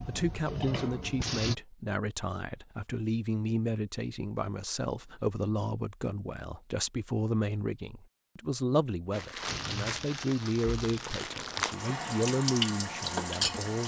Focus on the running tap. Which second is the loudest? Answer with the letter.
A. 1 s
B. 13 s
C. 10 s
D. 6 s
B.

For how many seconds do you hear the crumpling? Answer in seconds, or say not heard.
3 s.